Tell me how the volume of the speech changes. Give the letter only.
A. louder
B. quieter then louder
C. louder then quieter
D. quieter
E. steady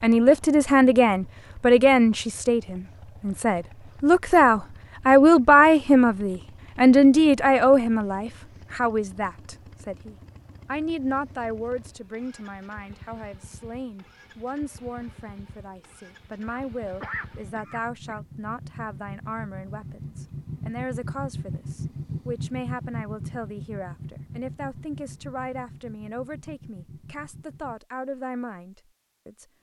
D.